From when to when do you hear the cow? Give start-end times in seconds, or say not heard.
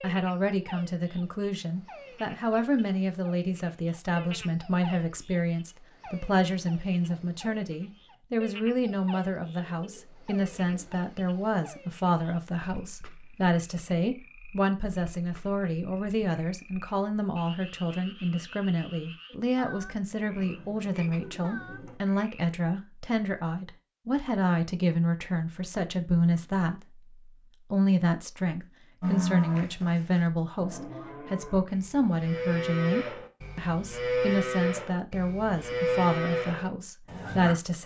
29.0-37.5.